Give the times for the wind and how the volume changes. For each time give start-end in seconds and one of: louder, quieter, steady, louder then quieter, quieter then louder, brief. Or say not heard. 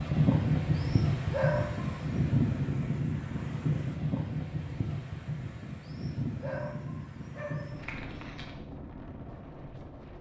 0.0-10.1 quieter.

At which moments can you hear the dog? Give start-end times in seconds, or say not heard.
0.8-2.0, 5.8-8.4.